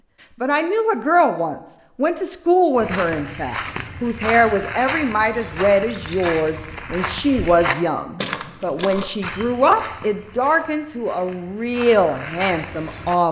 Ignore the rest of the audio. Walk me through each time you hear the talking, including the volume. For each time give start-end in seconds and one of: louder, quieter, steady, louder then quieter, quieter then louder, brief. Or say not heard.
0.4-13.2 steady.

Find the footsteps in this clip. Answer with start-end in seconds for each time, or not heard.
2.8-13.2.